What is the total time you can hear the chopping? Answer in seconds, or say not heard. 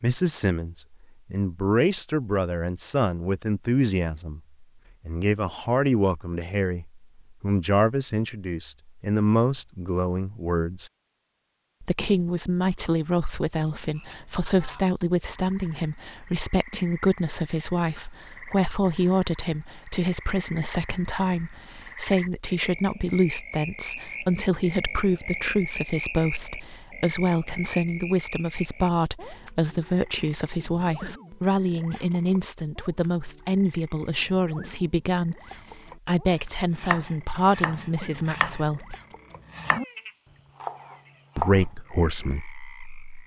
4 s.